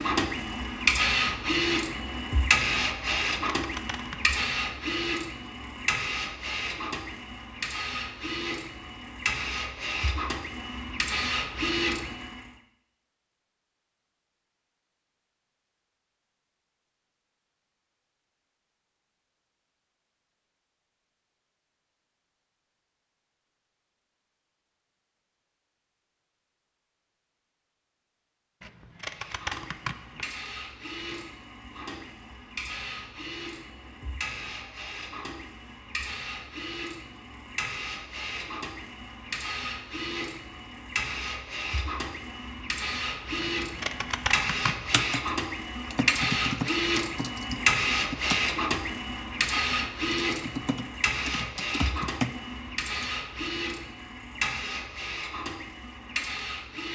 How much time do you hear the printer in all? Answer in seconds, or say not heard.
40 s.